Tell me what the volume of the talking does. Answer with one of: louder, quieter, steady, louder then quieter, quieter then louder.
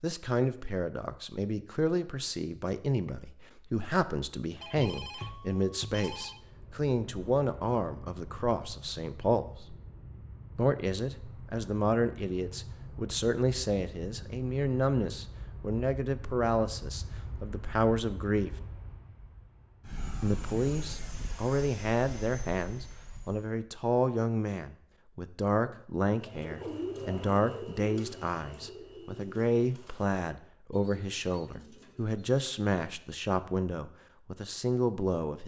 steady.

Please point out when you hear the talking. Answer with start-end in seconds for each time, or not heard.
0.0-9.8, 10.6-18.6, 20.2-35.4.